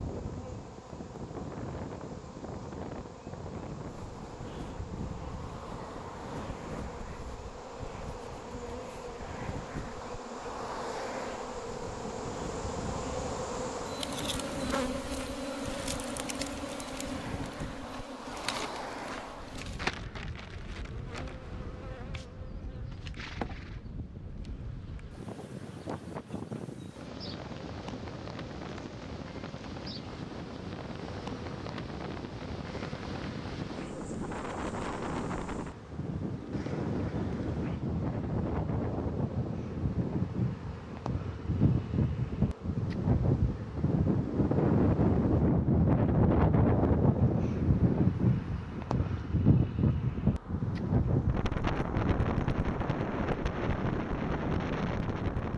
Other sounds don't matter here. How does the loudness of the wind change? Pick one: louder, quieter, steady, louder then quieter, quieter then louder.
louder.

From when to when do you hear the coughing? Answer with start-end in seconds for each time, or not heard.
not heard.